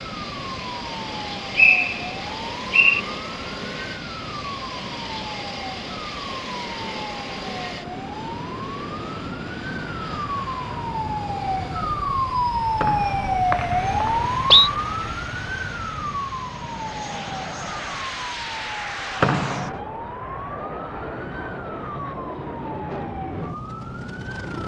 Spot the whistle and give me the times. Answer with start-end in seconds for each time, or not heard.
1.6-3.0, 12.8-14.7, 19.2-19.8.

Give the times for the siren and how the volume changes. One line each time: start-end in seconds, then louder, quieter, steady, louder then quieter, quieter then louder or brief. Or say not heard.
0.0-24.6 louder then quieter.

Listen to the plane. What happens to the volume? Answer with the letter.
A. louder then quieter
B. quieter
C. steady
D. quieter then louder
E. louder
C.